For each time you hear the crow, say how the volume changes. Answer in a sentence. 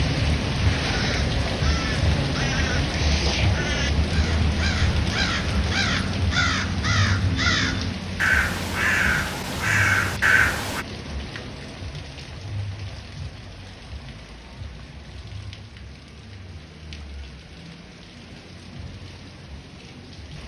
The crow can be heard from 0.9 to 10.8 s, getting louder.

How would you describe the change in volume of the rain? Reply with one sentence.
The loudness of the rain goes down.